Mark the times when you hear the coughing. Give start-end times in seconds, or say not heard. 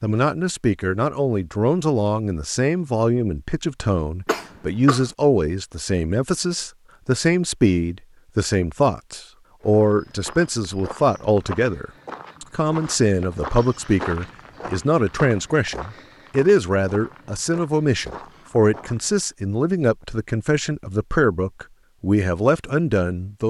4.2-5.1.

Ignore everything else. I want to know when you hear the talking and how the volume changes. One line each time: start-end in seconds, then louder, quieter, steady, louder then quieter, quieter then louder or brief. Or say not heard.
0.0-23.4 steady.